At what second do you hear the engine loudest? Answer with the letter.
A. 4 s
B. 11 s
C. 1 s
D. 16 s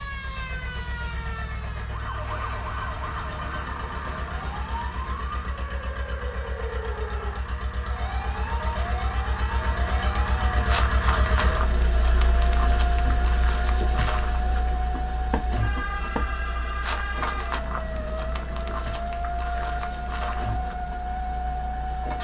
B.